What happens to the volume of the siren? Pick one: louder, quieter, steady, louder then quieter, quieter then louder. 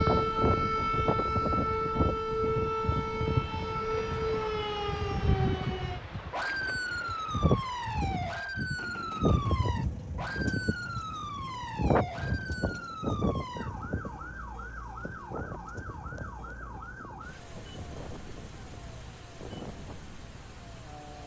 quieter.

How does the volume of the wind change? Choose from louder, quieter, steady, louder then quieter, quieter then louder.
quieter.